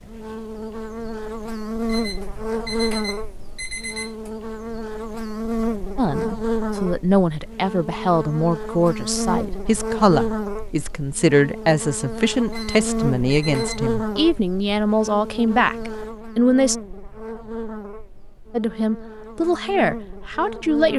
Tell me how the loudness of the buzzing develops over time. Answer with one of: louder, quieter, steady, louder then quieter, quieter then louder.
quieter.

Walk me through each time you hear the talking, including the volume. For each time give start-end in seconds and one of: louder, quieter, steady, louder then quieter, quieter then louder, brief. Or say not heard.
6.0-16.8 steady
18.5-20.9 brief.